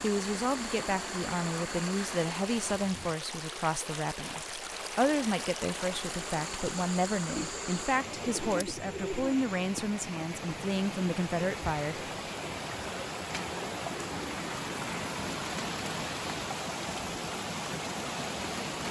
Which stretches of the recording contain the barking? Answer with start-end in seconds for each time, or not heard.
not heard.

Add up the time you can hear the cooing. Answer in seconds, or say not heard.
2 s.